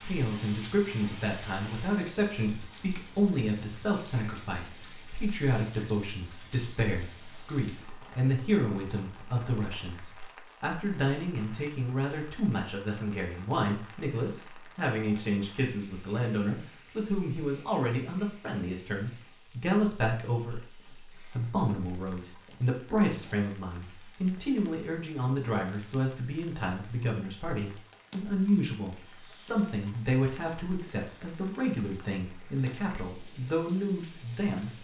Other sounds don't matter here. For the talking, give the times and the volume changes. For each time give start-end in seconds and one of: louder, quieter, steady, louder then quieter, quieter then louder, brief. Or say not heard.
0.0-34.7 steady.